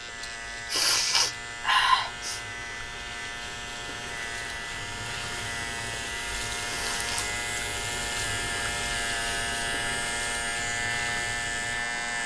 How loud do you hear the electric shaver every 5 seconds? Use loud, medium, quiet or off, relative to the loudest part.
medium, loud, loud.